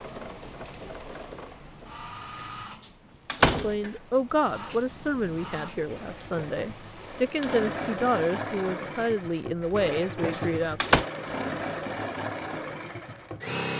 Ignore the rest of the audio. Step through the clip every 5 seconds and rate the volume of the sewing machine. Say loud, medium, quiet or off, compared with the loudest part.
medium, loud, loud.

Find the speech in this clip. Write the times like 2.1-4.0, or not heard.
3.6-10.9.